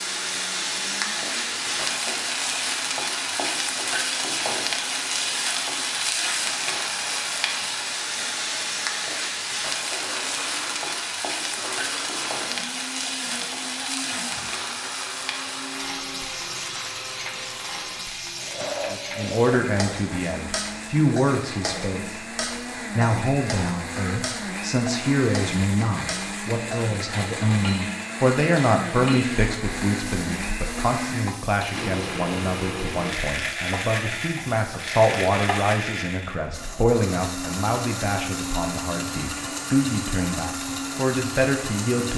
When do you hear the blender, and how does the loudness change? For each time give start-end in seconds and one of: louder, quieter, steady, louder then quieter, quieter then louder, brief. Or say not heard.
0.0-42.1 louder.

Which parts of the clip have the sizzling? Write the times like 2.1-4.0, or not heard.
0.0-35.8.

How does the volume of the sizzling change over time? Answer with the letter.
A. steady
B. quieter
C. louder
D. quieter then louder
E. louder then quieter
B.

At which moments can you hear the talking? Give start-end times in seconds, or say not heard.
18.9-22.2, 22.9-42.1.